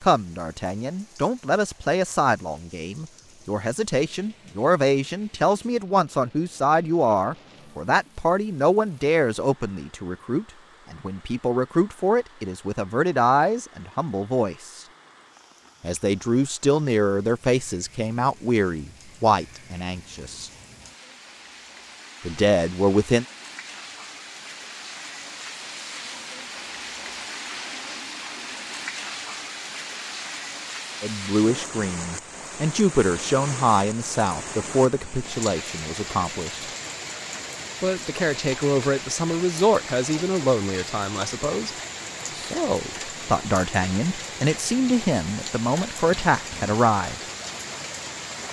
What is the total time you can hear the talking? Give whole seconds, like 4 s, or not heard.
35 s.